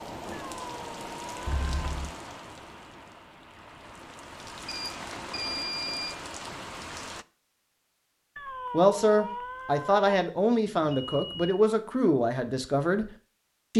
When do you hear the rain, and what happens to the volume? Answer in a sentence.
You can hear the rain from 0.0 to 7.2 s, getting quieter then louder.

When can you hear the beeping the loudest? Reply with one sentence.
The volume of the beeping peaks at 6 seconds.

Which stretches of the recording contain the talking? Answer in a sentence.
The talking can be heard from 8.7 to 13.1 s.